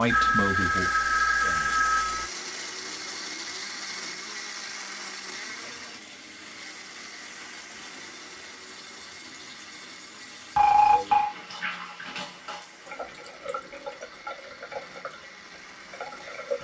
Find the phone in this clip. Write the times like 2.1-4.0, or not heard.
0.1-2.2, 10.6-11.3.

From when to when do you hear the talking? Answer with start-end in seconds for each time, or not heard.
0.0-1.8.